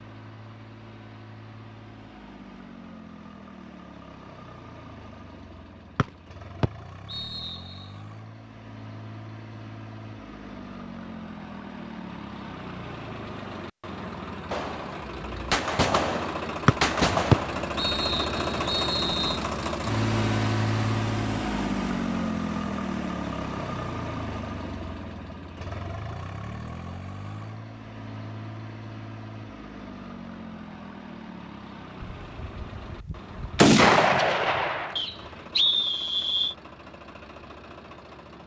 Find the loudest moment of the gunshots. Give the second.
34 s.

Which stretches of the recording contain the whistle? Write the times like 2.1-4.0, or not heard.
6.0-7.6, 16.6-19.4, 35.0-36.5.